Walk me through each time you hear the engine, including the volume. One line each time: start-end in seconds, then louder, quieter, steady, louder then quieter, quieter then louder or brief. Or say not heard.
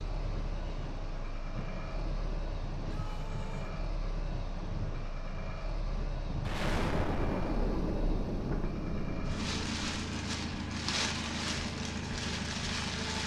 0.0-13.2 louder.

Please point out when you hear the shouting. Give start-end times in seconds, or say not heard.
2.9-3.8.